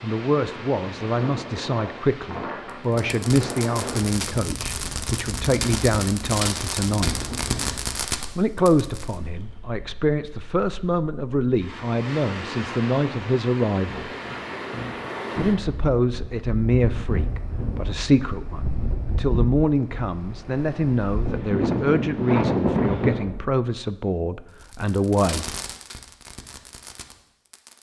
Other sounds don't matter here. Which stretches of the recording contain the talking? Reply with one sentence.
The talking can be heard from 0.0 to 7.2 s, from 8.3 to 14.1 s and from 15.3 to 25.5 s.